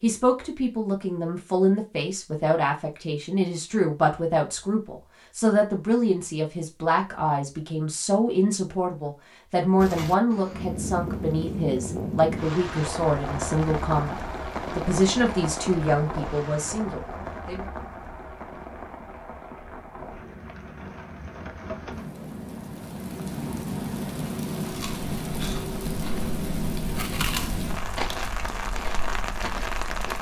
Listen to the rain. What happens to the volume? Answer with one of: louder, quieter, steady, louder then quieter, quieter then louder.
quieter then louder.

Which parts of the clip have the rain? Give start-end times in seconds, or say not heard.
9.8-30.1.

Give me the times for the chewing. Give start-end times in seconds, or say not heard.
24.6-30.1.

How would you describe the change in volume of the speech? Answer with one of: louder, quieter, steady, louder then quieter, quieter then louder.
steady.